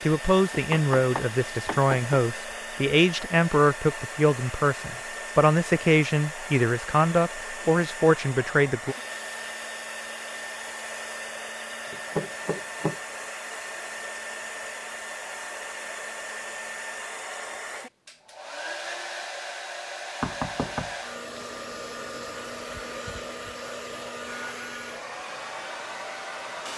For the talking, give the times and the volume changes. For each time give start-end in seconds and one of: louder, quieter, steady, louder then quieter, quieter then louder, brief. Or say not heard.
0.0-8.9 steady.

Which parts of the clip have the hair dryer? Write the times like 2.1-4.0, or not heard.
0.0-26.7.